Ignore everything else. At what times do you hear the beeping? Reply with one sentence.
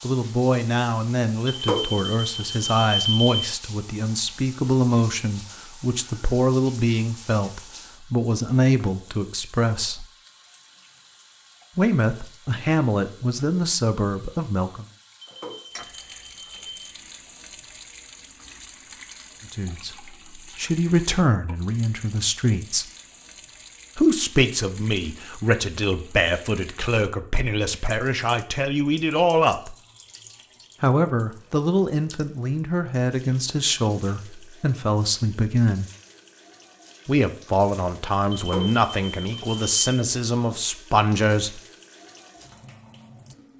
The beeping can be heard from 1.4 to 3.4 s, from 15.2 to 16.9 s and from 38.3 to 40.0 s.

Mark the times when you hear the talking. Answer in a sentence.
You can hear the talking from 0.0 to 10.1 s, from 11.8 to 14.8 s, from 19.5 to 22.9 s, from 23.9 to 29.8 s, from 30.8 to 35.9 s and from 37.0 to 41.6 s.